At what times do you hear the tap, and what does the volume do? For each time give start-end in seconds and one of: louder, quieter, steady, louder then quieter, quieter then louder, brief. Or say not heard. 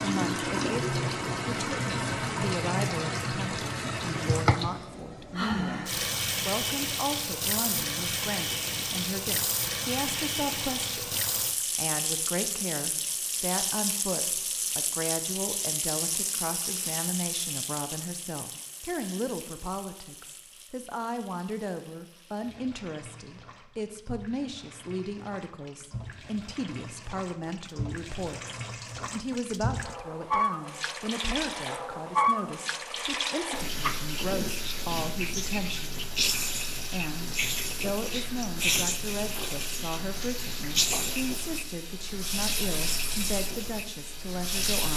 0.0-44.9 quieter then louder.